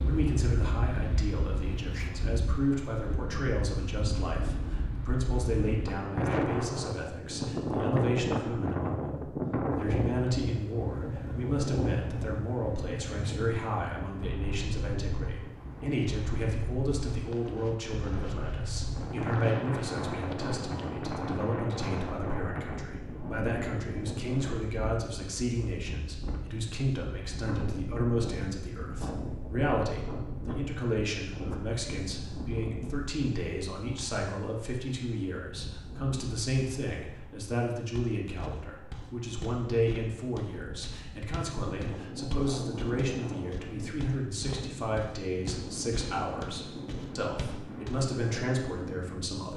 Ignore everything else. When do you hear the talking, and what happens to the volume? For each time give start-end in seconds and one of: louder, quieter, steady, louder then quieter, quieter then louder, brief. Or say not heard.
0.0-49.5 steady.